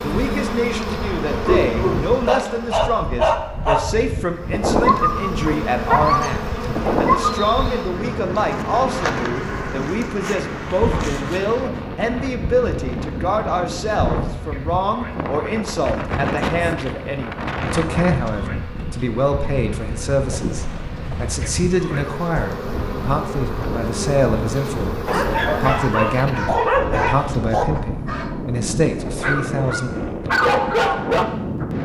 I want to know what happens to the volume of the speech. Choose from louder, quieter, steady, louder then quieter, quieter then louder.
steady.